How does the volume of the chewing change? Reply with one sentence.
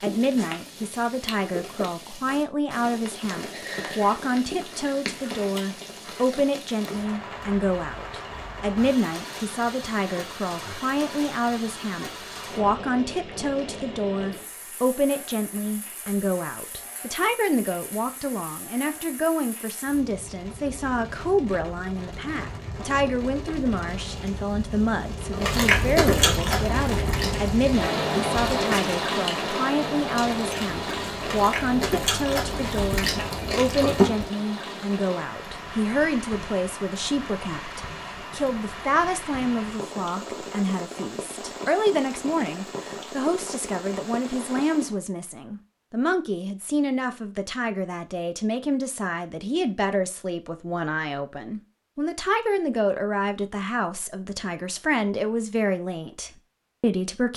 The loudness of the chewing goes down, then up.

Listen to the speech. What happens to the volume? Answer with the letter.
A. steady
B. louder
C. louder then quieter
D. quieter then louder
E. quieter
A.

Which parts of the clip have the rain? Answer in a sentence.
The rain can be heard from 0.0 to 45.0 s.